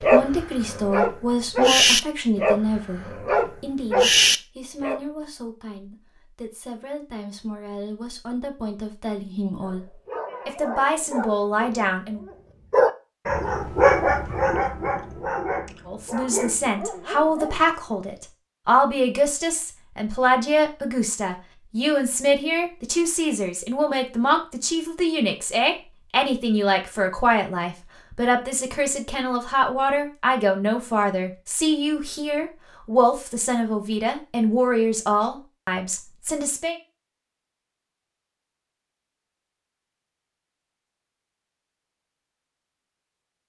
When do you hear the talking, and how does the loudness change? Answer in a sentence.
You can hear the talking from 0.0 to 12.2 s, getting quieter then louder; and from 15.8 to 36.8 s, at a steady volume.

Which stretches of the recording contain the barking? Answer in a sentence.
You can hear the barking from 0.0 to 5.0 s and from 9.6 to 18.0 s.